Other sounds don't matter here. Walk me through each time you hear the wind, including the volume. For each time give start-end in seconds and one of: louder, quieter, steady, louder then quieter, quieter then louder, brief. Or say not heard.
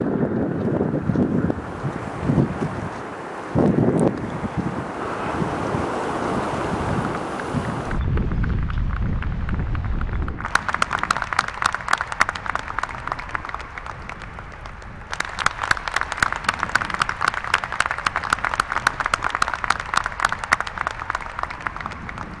0.0-22.3 quieter.